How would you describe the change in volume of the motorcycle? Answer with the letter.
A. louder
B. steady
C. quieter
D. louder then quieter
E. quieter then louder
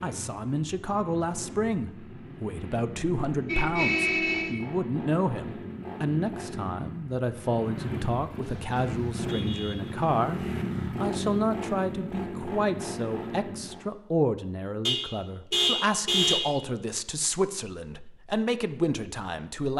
A.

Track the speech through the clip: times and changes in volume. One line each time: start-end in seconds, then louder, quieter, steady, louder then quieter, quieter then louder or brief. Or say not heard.
0.0-19.7 steady.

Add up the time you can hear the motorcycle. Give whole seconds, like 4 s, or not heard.
14 s.